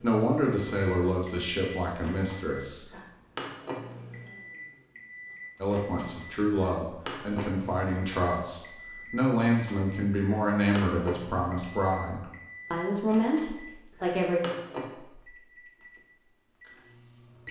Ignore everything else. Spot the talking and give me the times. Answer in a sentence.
You can hear the talking from 0.0 to 2.9 s and from 5.6 to 14.4 s.